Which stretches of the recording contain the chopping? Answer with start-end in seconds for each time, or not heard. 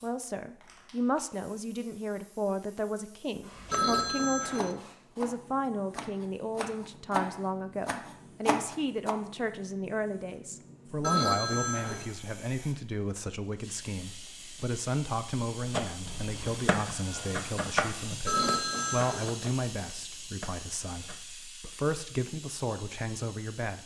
3.5-9.2, 15.7-21.2.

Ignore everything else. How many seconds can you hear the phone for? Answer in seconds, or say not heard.
3 s.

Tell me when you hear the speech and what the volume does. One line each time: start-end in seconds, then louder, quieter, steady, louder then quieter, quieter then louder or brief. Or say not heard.
0.0-23.8 steady.